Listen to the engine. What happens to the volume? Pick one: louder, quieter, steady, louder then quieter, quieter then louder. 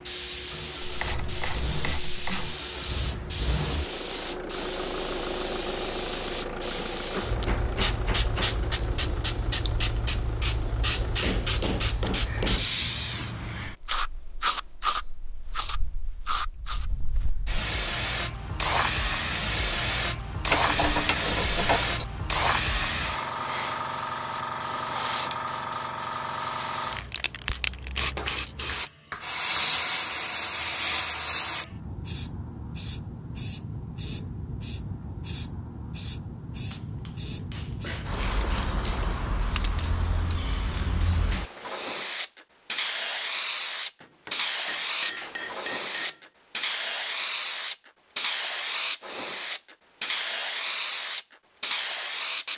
louder then quieter.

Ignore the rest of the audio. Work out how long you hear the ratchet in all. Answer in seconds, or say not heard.
5 s.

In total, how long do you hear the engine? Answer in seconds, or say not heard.
12 s.